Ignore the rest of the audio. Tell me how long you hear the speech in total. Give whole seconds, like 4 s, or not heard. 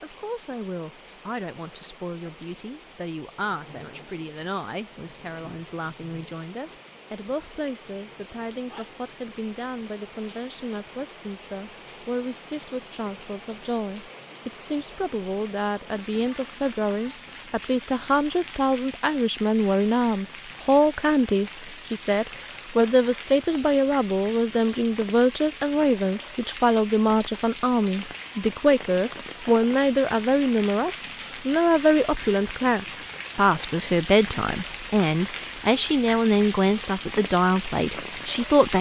39 s.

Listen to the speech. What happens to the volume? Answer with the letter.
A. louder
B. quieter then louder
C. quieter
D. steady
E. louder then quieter
A.